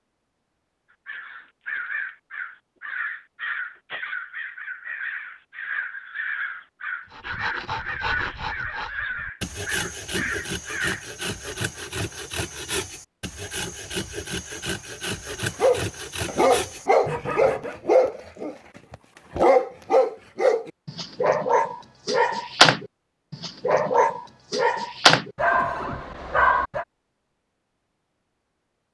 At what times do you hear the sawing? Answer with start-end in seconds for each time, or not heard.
7.1-17.9.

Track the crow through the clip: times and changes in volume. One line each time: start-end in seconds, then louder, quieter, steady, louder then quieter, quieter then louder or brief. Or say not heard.
1.1-11.1 steady.